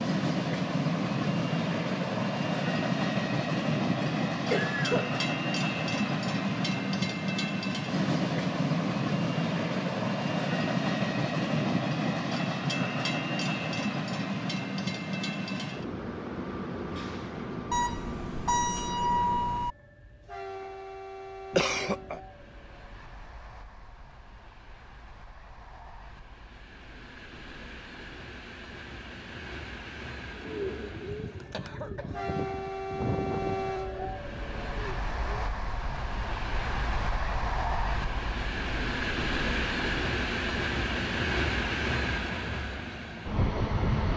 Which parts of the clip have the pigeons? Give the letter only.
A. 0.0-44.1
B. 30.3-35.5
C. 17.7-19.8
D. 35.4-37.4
B.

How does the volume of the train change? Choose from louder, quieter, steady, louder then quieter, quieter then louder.
quieter then louder.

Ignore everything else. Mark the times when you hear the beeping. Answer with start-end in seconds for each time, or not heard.
17.7-19.8.